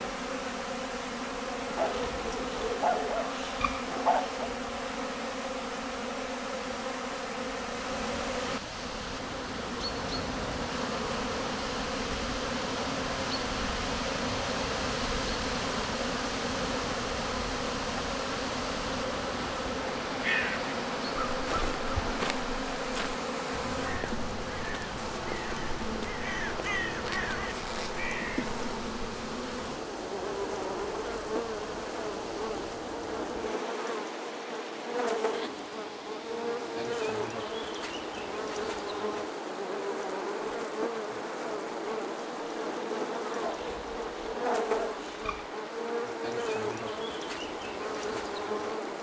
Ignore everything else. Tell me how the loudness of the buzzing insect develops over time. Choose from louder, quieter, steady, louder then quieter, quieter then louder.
steady.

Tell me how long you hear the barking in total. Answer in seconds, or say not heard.
5 s.